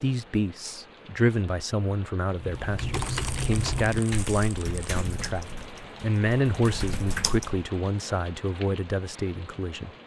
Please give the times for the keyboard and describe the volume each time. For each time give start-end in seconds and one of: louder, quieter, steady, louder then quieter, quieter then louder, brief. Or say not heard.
2.4-7.7 quieter then louder.